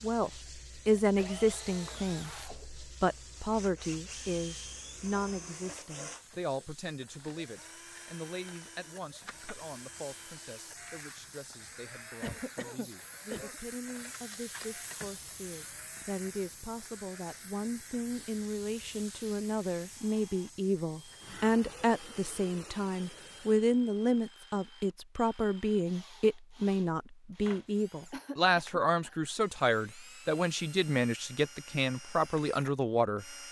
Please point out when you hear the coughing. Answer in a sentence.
The coughing can be heard from 1.7 to 2.7 s, from 12.2 to 13.6 s and from 28.1 to 29.2 s.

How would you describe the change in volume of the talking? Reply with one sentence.
The volume of the talking goes down, then up.